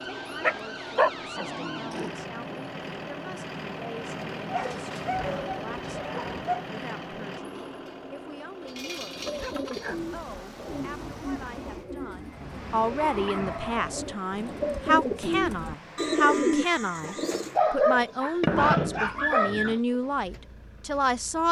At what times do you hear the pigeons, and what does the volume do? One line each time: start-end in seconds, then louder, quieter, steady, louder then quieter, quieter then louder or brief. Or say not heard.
9.0-17.6 louder.